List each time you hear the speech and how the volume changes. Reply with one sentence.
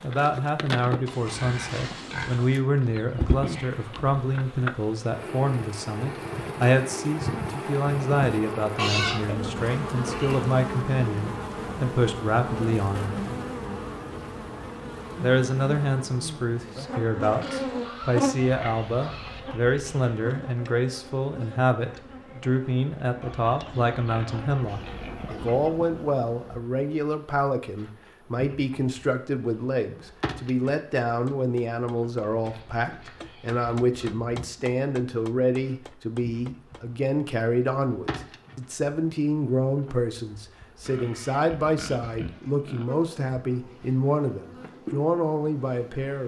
You can hear the speech from 0.0 to 13.2 s, at a steady volume; and from 15.2 to 46.2 s, at a steady volume.